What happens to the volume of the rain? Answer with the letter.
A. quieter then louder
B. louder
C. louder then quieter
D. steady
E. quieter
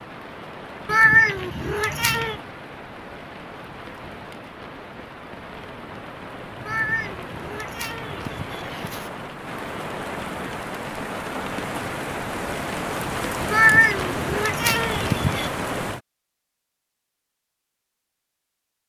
B.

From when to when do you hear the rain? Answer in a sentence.
The rain can be heard from 0.0 to 16.0 s.